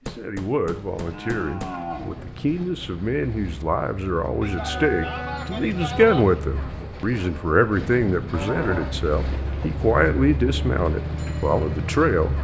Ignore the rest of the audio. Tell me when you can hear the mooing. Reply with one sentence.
The mooing can be heard from 0.7 to 2.6 s, from 4.4 to 6.4 s and from 8.3 to 9.7 s.